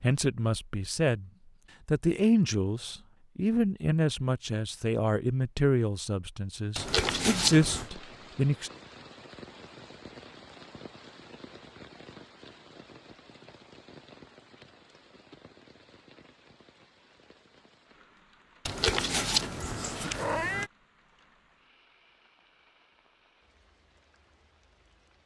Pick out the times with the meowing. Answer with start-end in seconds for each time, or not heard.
6.8-7.9, 18.6-20.7.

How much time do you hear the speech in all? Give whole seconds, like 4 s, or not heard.
9 s.